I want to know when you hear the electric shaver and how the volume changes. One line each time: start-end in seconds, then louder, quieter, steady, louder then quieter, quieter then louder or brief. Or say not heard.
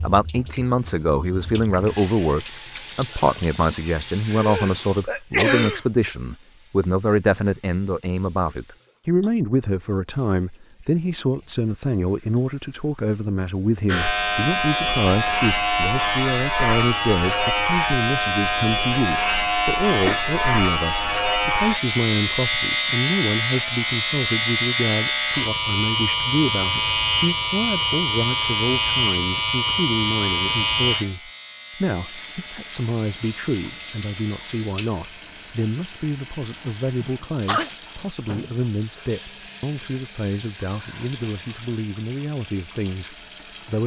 13.8-37.2 quieter.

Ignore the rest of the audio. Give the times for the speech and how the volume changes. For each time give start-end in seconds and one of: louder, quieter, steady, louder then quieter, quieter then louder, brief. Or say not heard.
0.0-43.8 quieter.